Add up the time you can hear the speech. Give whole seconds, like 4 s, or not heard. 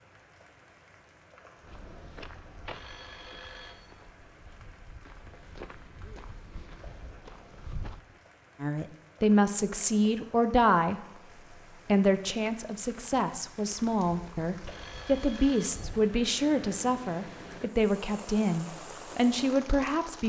11 s.